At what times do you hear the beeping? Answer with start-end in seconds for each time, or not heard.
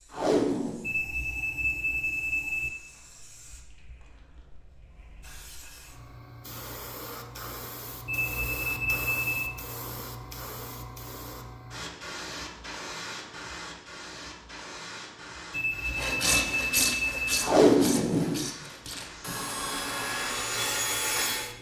0.8-2.7, 8.1-9.5, 15.5-17.4.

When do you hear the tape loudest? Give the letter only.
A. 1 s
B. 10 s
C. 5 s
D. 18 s
D.